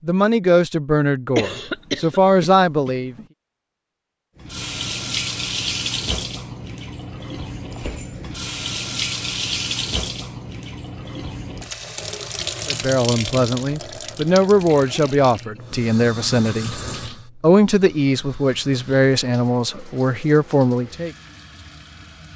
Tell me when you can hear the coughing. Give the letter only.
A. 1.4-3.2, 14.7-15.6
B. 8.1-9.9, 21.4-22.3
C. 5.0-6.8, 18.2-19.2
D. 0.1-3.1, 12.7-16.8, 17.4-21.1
A.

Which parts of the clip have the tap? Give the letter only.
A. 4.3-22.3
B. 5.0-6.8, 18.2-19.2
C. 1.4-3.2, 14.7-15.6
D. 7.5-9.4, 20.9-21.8
A.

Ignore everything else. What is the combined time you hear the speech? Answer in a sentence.
You can hear the speech for 11 seconds altogether.